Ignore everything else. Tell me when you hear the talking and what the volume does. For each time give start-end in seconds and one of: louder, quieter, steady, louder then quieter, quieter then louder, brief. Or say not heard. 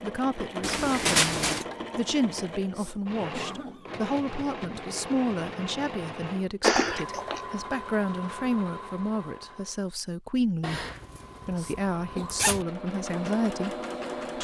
0.0-10.8 steady
11.4-13.8 brief.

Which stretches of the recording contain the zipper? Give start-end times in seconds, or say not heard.
0.6-1.6, 6.6-7.4, 10.6-12.7.